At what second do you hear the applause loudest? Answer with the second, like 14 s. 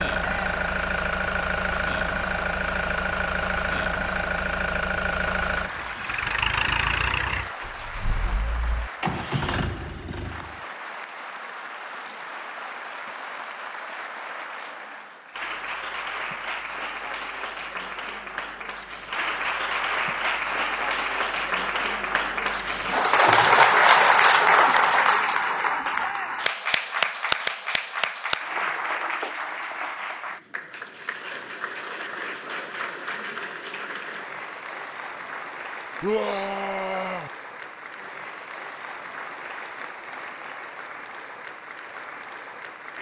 24 s.